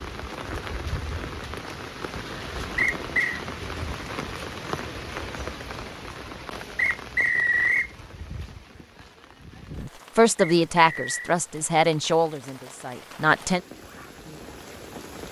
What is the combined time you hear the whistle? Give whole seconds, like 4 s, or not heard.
3 s.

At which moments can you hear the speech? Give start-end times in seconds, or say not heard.
9.8-13.6.